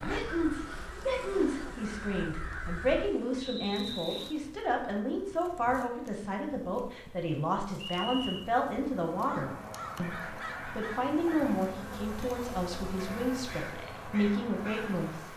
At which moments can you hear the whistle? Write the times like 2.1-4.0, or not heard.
3.4-4.3, 8.0-8.5.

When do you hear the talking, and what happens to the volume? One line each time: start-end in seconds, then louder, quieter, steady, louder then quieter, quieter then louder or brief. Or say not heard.
0.0-15.2 steady.